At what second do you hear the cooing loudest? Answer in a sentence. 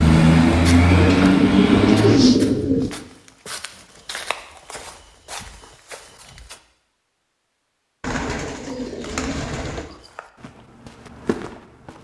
The loudest moment of the cooing is at 2 seconds.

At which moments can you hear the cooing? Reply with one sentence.
You can hear the cooing from 0.9 to 2.9 s and from 8.0 to 9.8 s.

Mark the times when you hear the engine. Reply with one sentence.
The engine can be heard from 0.0 to 2.2 s.